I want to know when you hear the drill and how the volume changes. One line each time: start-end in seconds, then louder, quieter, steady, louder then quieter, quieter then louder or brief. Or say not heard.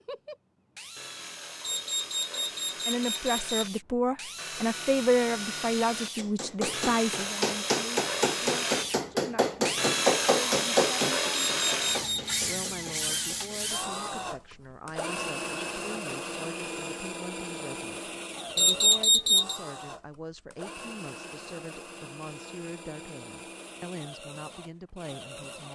0.0-25.6 louder then quieter.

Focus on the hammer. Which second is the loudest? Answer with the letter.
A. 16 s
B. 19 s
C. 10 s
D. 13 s
C.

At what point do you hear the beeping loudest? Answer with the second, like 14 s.
19 s.